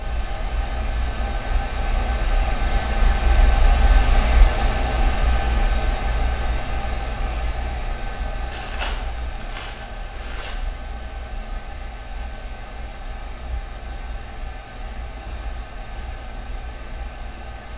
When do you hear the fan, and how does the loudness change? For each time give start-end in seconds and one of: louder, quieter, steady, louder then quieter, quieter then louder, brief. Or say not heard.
0.0-17.7 quieter.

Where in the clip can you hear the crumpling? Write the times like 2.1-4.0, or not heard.
8.5-10.6.